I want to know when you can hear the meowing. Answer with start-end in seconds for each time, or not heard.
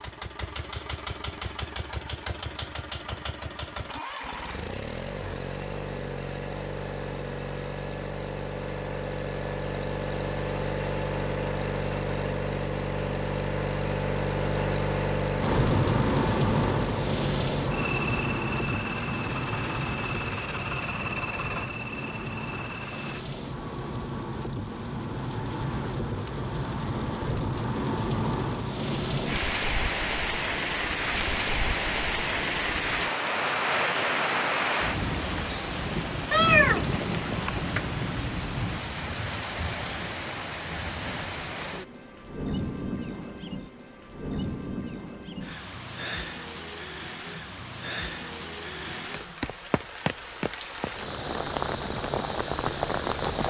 36.3-37.9.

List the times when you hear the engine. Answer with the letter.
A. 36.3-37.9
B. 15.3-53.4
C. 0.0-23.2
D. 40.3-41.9
C.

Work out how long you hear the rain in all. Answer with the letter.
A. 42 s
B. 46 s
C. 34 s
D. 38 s
D.